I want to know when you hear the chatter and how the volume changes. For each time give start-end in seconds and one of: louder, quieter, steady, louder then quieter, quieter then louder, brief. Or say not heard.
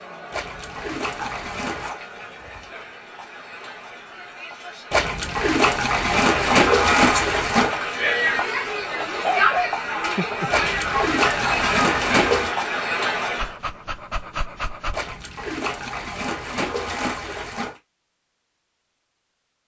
0.0-13.6 louder.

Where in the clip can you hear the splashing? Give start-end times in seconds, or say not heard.
0.3-1.9, 4.9-7.8, 10.5-12.6, 14.9-17.8.